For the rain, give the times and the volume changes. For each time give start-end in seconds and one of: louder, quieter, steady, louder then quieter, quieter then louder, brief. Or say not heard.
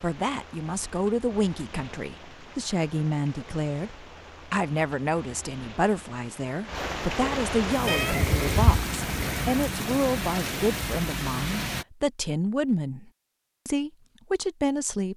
0.0-11.8 louder.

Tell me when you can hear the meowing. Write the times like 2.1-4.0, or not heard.
7.8-9.4.